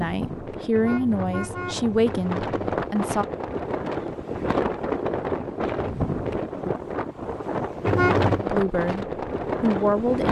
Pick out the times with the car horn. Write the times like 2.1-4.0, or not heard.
0.8-2.8, 7.8-8.4.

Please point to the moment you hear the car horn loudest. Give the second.
8 s.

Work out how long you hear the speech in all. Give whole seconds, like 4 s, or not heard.
5 s.